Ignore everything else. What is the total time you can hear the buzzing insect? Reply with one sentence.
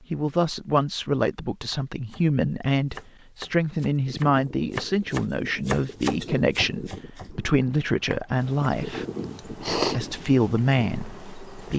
You can hear the buzzing insect for 3 seconds altogether.